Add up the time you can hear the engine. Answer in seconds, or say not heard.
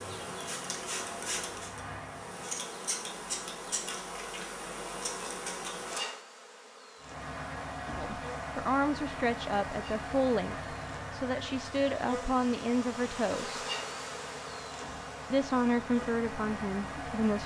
13 s.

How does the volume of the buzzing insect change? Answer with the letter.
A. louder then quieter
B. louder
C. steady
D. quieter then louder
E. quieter
D.